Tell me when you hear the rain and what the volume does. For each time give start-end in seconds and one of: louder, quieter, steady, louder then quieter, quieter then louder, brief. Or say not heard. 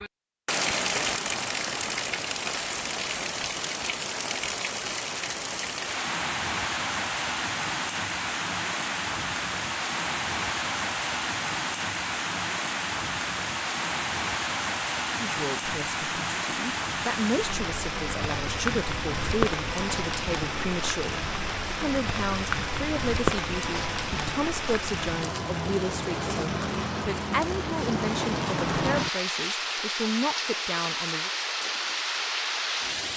0.0-33.1 steady.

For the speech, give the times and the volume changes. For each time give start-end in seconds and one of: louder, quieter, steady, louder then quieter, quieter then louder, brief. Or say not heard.
15.2-31.3 steady.